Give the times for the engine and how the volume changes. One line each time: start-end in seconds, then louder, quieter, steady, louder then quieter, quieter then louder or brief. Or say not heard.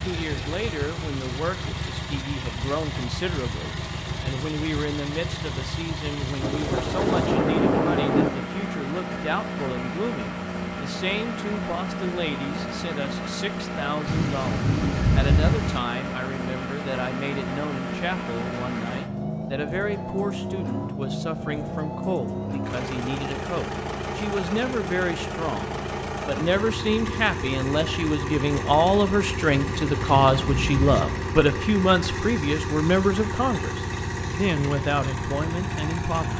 0.0-36.3 steady.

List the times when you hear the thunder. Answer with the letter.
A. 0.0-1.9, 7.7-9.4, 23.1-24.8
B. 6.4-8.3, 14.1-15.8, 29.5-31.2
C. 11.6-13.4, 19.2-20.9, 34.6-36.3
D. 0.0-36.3
B.